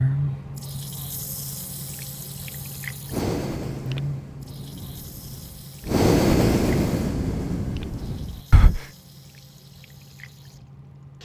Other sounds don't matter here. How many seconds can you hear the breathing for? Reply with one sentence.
The breathing can be heard for 6 seconds in total.